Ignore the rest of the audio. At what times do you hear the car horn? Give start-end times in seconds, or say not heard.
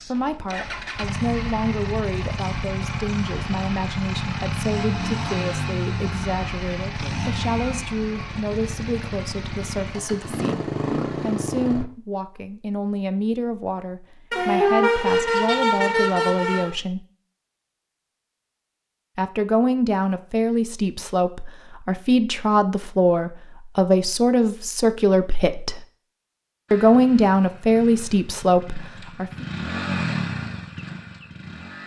14.3-16.7.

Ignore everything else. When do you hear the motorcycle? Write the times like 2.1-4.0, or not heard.
0.0-11.9, 26.6-31.8.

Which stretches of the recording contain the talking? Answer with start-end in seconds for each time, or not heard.
0.1-17.1, 19.1-25.8, 26.7-29.4.